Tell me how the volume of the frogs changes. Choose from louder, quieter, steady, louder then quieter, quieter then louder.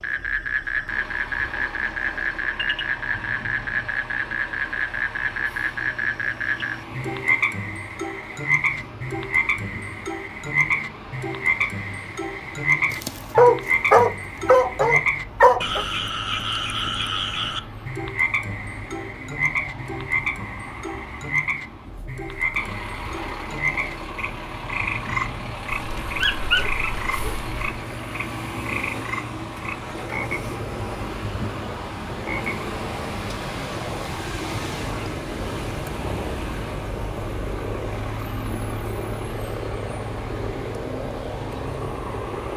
quieter.